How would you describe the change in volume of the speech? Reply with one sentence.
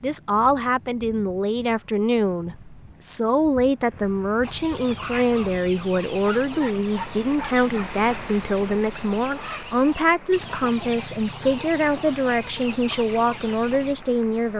The loudness of the speech stays about the same.